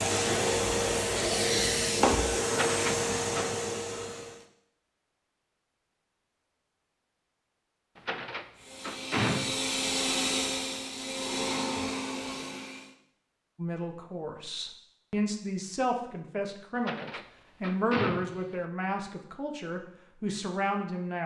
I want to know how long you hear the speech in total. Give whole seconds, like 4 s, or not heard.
8 s.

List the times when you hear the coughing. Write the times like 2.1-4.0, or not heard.
not heard.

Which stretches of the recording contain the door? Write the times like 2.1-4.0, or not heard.
2.5-3.5, 8.0-9.6, 16.8-18.6.